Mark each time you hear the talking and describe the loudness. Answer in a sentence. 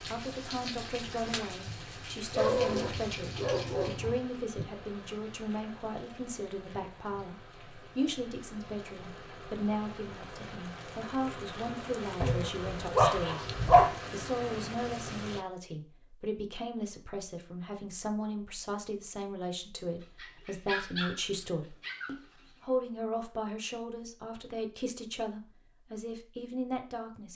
You can hear the talking from 0.0 to 27.3 s, at a steady volume.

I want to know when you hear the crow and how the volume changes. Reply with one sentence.
You can't hear the crow here.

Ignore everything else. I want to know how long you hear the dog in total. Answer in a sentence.
The dog can be heard for 6 seconds in total.